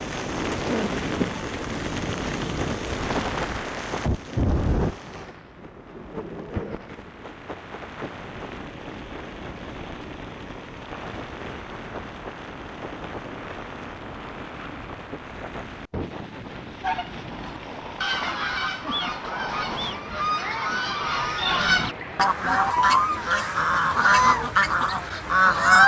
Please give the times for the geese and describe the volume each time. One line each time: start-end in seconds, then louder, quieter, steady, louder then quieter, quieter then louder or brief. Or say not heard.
16.8-25.8 louder.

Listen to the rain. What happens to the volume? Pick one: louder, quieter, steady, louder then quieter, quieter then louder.
quieter.